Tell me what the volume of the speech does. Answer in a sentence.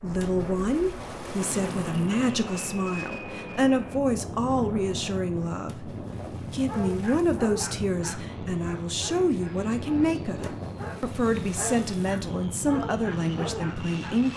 The volume of the speech stays about the same.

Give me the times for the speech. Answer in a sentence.
The speech can be heard from 0.0 to 14.3 s.